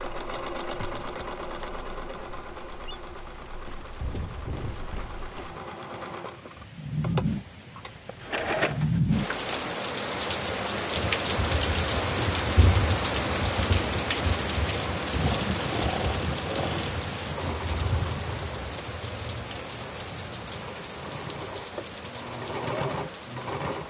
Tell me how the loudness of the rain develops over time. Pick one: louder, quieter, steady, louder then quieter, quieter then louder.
louder then quieter.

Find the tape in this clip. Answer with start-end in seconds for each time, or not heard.
not heard.